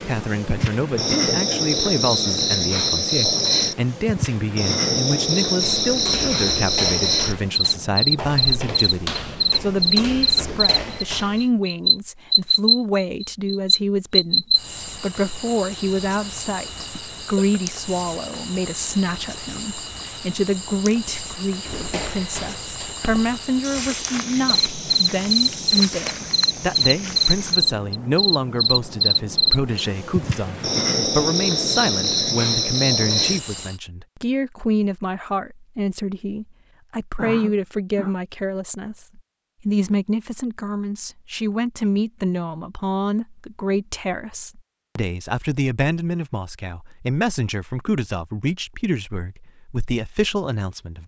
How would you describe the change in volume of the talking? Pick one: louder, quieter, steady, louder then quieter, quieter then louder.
steady.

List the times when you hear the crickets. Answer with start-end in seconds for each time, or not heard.
0.0-33.8.